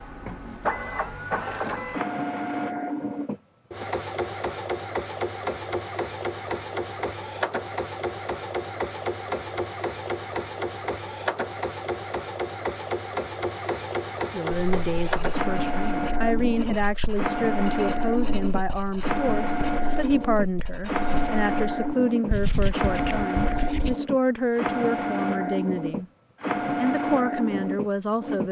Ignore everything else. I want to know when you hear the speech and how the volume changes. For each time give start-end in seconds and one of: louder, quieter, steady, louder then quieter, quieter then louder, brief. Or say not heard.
14.3-26.1 steady
26.8-28.4 brief.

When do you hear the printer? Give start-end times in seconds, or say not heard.
0.0-28.4.